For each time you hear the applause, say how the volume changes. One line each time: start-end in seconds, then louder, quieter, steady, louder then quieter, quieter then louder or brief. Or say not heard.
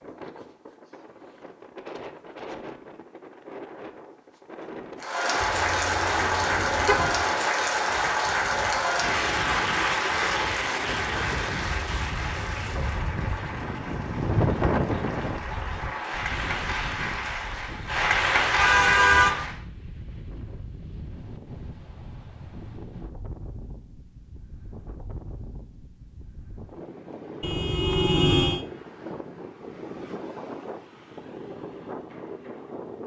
5.0-19.6 quieter then louder.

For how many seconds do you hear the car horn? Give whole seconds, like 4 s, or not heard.
4 s.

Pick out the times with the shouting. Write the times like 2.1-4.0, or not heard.
not heard.